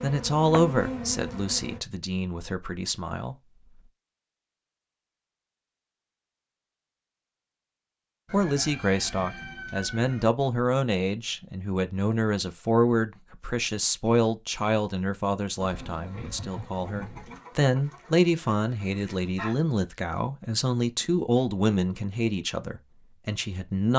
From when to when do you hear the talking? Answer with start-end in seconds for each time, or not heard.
0.0-3.4, 8.3-23.9.